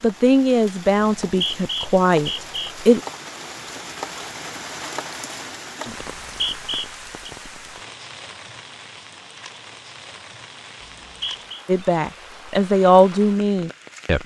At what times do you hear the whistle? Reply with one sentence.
The whistle can be heard from 1.2 to 2.8 s, from 6.0 to 7.3 s and from 10.8 to 11.7 s.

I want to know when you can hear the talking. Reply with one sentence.
You can hear the talking from 0.0 to 3.0 s and from 11.7 to 14.2 s.